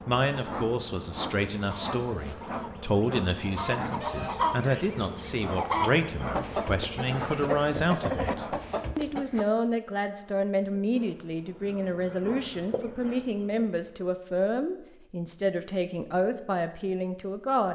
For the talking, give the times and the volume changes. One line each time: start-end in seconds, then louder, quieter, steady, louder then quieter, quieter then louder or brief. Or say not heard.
0.1-17.7 steady.